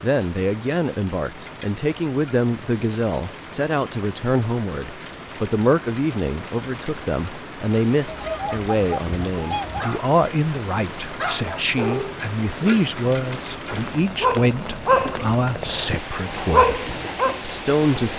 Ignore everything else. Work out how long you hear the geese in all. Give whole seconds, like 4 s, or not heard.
2 s.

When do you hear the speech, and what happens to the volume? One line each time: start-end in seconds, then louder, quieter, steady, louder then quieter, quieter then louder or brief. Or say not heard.
0.0-18.1 steady.